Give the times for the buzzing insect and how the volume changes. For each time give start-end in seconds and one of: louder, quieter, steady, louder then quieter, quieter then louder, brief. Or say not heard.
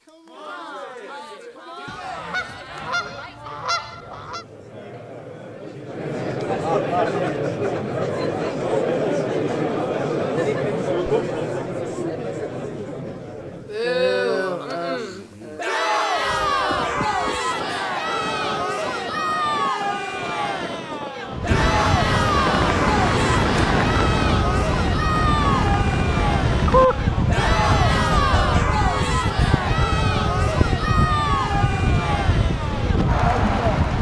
not heard.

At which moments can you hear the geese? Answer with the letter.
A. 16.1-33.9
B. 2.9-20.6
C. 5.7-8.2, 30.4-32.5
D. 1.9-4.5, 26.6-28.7
D.